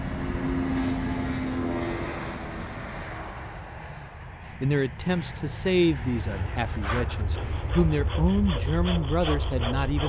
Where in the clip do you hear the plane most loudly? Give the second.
1 s.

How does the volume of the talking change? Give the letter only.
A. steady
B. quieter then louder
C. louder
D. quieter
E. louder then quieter
B.